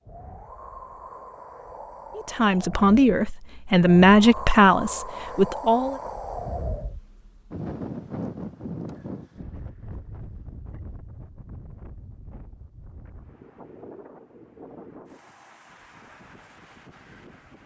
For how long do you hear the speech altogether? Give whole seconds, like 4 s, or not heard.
4 s.